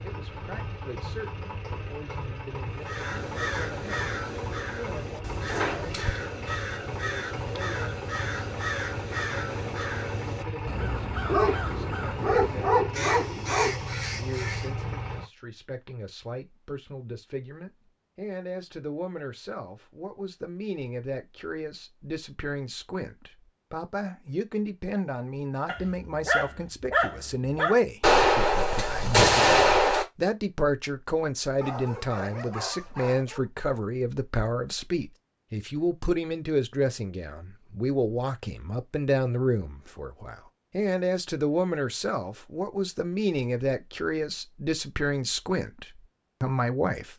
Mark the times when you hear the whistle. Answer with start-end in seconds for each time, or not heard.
not heard.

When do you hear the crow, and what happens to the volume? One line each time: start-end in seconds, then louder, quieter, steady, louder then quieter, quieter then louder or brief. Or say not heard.
2.7-14.8 steady.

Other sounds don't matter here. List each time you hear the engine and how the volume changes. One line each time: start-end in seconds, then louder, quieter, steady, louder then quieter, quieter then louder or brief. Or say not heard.
0.0-15.3 steady.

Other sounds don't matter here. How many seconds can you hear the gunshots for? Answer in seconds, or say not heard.
2 s.